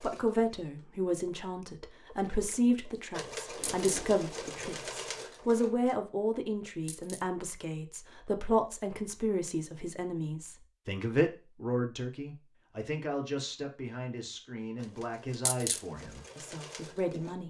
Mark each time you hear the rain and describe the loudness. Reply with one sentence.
You can't hear the rain here.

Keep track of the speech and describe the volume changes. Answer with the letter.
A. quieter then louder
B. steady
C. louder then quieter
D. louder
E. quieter
E.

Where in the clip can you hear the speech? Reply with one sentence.
The speech can be heard from 0.0 to 17.4 s.